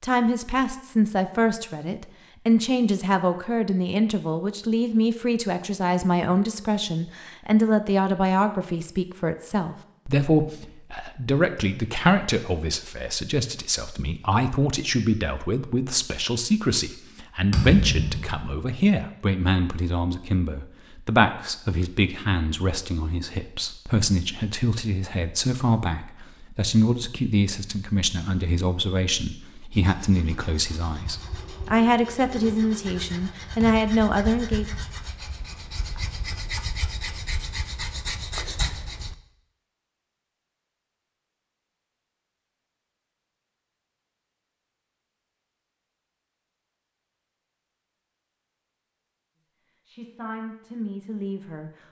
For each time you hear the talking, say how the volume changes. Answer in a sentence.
The talking can be heard from 0.0 to 34.6 s, at a steady volume; and briefly from 49.9 to 51.7 s.